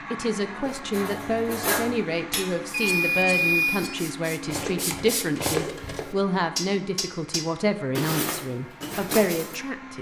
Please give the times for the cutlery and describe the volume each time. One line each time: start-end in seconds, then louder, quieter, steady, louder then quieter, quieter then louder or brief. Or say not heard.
0.7-9.6 quieter then louder.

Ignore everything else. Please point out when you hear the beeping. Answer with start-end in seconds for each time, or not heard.
2.7-3.8.